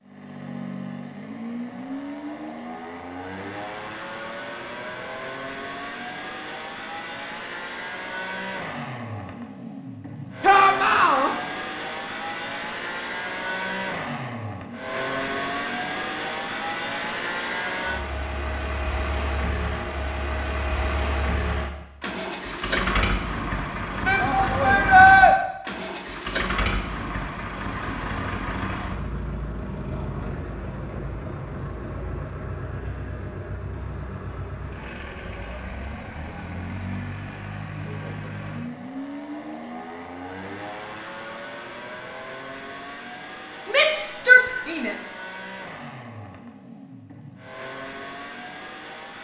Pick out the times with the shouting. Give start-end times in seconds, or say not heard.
10.4-11.3, 24.1-25.4, 43.6-45.0.